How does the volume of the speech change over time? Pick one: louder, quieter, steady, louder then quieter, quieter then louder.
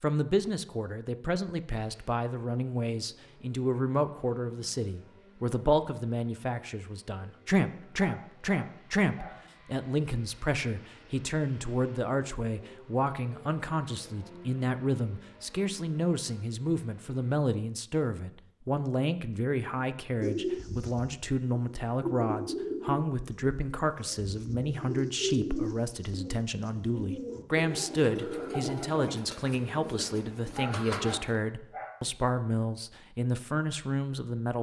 steady.